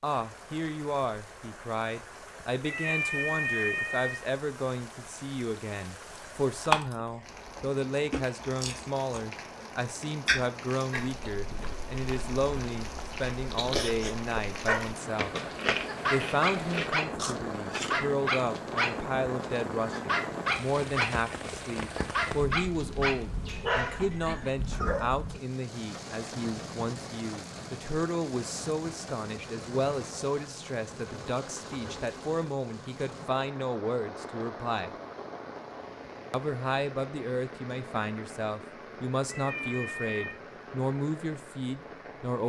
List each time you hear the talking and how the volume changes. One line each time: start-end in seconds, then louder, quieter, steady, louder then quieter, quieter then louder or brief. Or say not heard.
0.0-15.3 steady
16.1-34.9 steady
36.3-42.4 steady.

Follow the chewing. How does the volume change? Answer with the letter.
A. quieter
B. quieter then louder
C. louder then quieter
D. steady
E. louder
A.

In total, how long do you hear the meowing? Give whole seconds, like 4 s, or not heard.
3 s.